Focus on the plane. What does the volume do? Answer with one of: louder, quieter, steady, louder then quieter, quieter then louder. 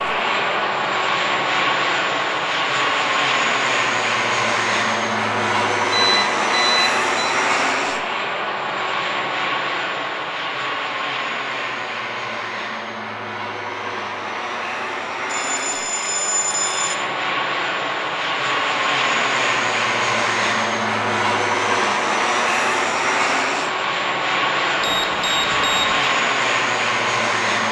quieter then louder.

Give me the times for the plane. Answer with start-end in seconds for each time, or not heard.
0.0-27.6.